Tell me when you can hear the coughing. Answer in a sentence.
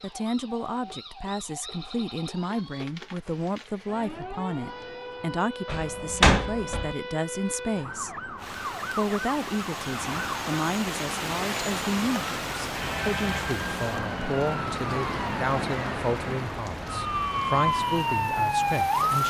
The coughing can't be heard in this clip.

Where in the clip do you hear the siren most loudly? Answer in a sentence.
The volume of the siren peaks at 19 seconds.